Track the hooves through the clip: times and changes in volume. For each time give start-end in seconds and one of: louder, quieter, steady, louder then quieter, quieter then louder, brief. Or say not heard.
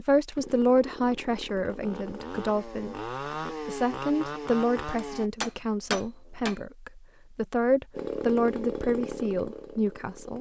not heard.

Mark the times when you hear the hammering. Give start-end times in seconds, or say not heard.
5.0-6.5.